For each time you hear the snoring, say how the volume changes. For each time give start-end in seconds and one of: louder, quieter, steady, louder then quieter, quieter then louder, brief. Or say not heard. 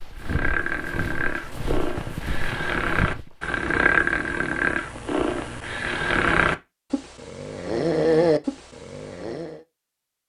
0.2-9.6 louder.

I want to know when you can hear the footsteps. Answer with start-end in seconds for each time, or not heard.
0.0-3.5.